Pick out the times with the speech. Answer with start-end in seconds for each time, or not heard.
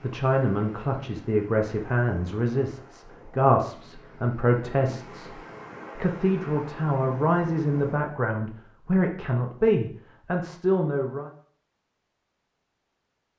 0.0-11.3.